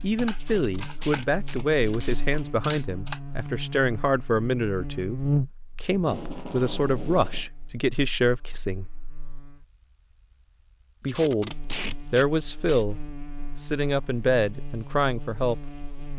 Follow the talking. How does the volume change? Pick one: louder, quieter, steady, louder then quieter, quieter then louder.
steady.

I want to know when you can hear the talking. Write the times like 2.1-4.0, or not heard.
0.0-8.8, 11.0-15.7.